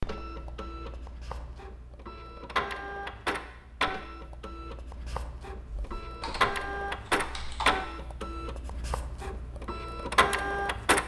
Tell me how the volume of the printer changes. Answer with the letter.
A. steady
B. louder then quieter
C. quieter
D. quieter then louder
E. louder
E.